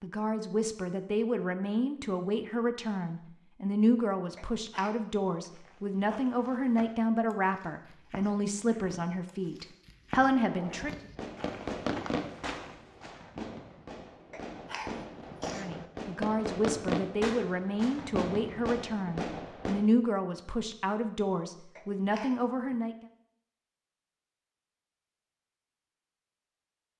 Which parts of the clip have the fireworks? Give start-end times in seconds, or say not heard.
10.3-19.9.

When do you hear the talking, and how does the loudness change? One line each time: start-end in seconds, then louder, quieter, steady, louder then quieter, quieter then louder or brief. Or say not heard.
0.0-10.9 steady
15.5-22.9 steady.